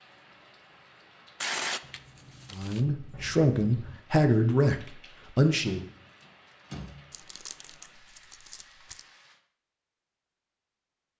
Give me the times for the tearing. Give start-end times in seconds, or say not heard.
1.4-2.9, 7.1-9.1.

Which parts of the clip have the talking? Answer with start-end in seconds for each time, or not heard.
2.5-5.8.